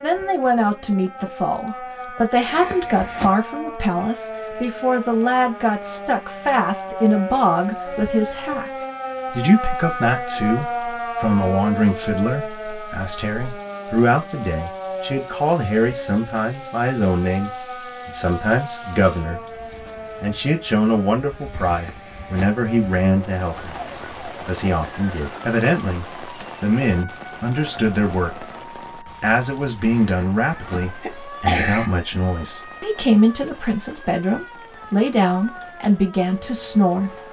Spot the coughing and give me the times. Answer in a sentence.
You can hear the coughing from 2.4 to 3.3 s, from 21.5 to 22.6 s and from 30.0 to 31.9 s.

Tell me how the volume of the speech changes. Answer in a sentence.
The loudness of the speech stays about the same.